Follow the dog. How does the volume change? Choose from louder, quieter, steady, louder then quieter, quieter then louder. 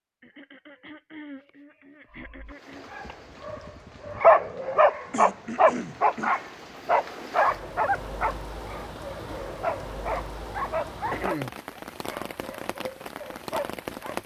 quieter.